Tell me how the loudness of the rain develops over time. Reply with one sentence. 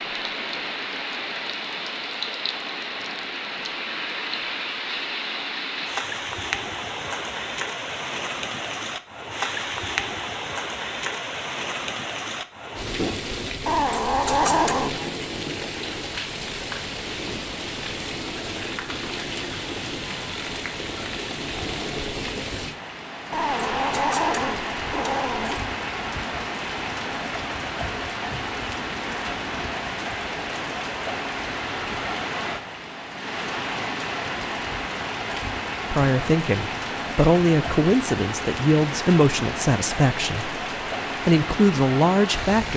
The loudness of the rain stays about the same.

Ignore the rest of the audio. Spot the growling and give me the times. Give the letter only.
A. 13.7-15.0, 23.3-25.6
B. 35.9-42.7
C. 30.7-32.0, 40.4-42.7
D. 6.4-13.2
A.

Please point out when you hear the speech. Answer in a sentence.
The speech can be heard from 35.9 to 42.7 s.